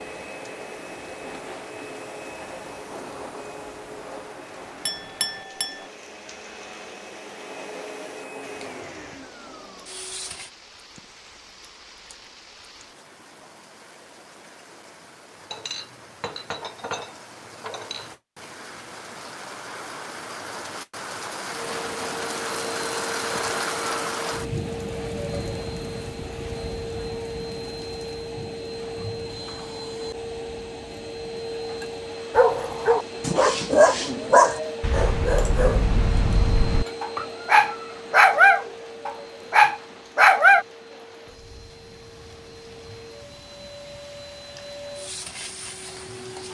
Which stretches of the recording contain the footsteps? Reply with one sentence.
You can't hear the footsteps here.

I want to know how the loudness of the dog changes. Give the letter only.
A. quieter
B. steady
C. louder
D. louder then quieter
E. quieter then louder
E.